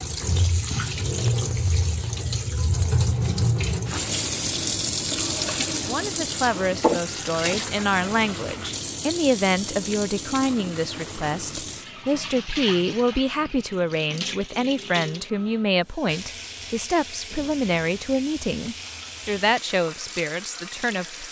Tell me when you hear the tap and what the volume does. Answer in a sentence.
You can hear the tap from 0.0 to 21.2 s, getting quieter.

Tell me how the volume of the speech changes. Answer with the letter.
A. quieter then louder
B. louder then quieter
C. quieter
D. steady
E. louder
D.